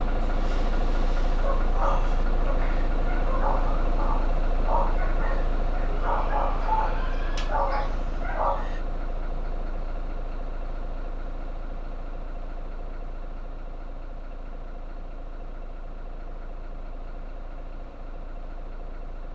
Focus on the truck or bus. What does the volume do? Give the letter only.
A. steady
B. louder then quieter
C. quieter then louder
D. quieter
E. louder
D.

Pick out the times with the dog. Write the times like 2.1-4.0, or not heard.
1.3-8.8.